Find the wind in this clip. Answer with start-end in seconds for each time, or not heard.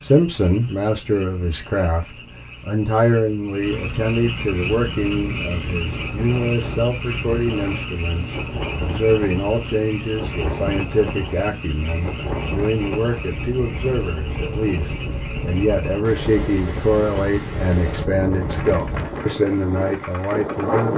4.7-20.9.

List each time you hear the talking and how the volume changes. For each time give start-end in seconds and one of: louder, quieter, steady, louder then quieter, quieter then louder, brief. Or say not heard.
0.0-20.9 steady.